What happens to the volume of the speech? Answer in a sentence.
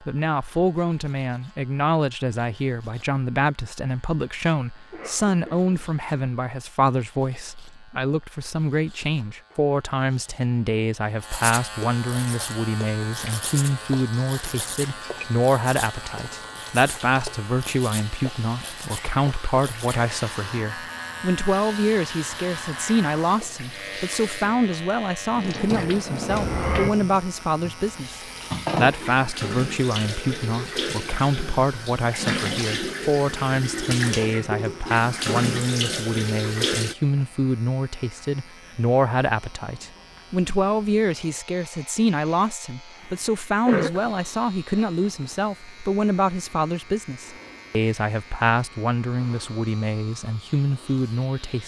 The volume of the speech stays about the same.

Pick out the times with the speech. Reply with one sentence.
The speech can be heard from 0.1 to 51.6 s.